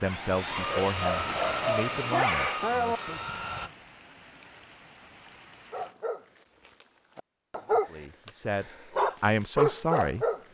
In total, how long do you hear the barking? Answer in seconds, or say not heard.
8 s.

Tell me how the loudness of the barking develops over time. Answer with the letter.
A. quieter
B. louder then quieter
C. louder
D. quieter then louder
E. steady
C.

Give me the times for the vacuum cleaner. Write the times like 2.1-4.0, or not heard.
0.0-3.7.